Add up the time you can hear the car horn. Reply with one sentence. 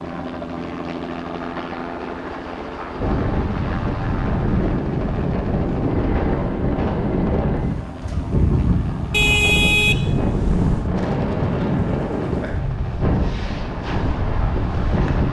The car horn can be heard for 2 seconds in total.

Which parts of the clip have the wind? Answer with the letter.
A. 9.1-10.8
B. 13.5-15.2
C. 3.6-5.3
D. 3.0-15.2
D.